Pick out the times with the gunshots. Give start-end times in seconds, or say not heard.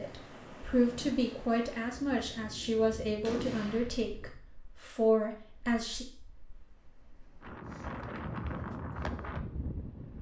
2.9-4.3.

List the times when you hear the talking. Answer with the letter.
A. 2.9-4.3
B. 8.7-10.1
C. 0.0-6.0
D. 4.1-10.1
C.